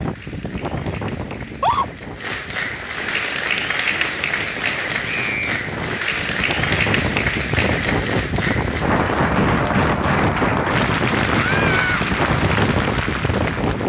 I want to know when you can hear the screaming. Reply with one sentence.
The screaming can be heard from 1.4 to 1.9 s, from 5.0 to 5.6 s and from 11.3 to 12.1 s.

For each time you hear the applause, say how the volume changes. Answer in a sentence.
The applause can be heard from 0.0 to 13.8 s, getting louder.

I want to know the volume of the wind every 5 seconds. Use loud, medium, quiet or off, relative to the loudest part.
medium, loud, loud.